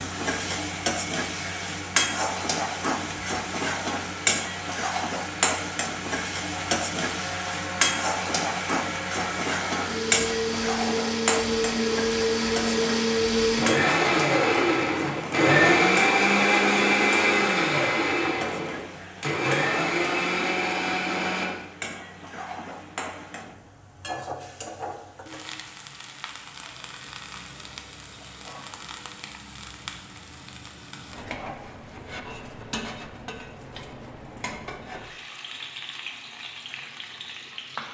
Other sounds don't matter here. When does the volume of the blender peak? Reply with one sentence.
The loudest moment of the blender is at 16 seconds.